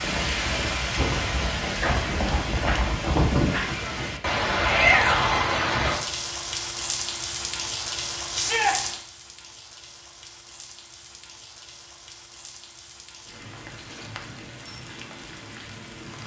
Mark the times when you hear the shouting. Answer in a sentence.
You can hear the shouting from 4.6 to 5.5 s and from 8.3 to 8.8 s.